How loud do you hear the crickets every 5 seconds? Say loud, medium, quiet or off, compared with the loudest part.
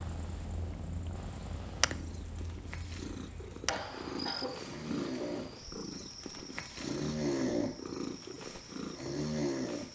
loud, medium.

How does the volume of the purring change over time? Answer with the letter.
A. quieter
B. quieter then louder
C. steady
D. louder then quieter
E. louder
E.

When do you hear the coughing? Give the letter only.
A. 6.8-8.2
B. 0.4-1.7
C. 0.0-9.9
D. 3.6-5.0
D.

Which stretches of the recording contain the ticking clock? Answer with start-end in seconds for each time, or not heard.
not heard.